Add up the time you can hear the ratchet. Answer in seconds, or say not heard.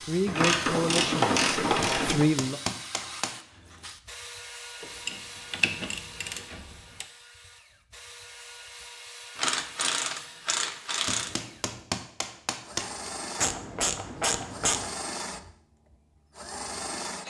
8 s.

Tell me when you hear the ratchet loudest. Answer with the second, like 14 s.
1 s.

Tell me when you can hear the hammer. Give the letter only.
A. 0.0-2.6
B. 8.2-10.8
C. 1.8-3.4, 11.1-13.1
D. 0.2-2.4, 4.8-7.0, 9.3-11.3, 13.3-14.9
C.